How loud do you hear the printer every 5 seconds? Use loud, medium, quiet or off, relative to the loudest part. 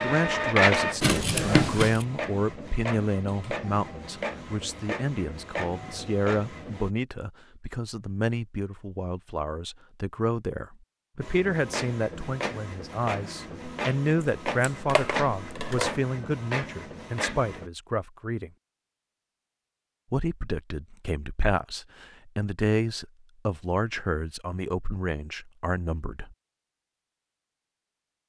loud, medium, medium, medium, off, off.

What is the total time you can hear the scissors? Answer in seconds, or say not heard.
3 s.